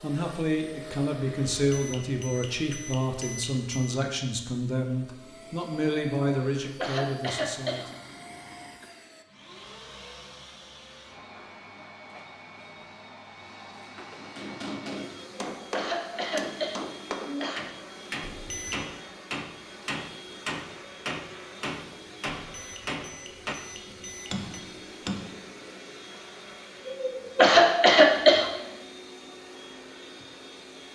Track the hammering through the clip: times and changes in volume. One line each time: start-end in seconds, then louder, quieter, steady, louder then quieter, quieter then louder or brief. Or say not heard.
14.1-25.4 steady.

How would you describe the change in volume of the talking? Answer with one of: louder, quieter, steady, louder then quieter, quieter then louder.
steady.